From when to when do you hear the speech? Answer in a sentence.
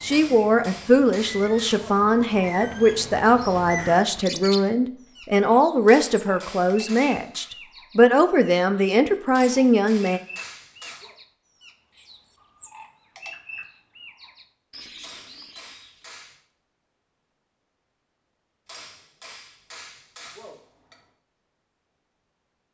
The speech can be heard from 0.0 to 10.2 s.